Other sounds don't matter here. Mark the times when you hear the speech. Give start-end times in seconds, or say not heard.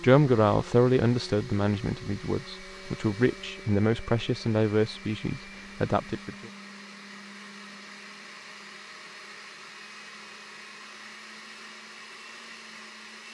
0.0-6.5.